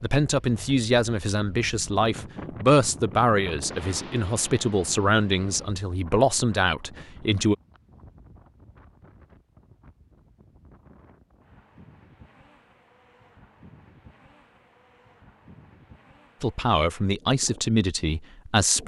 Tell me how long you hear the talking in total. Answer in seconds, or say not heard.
10 s.